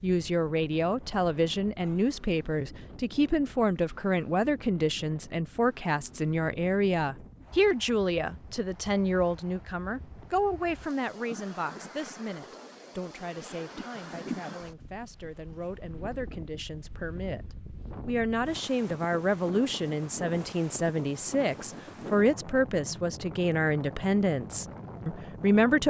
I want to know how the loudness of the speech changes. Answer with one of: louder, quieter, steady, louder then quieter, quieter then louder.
quieter then louder.